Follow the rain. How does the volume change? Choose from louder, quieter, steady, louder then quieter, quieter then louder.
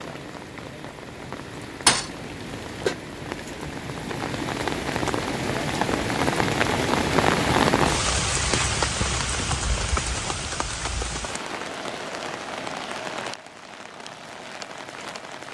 louder then quieter.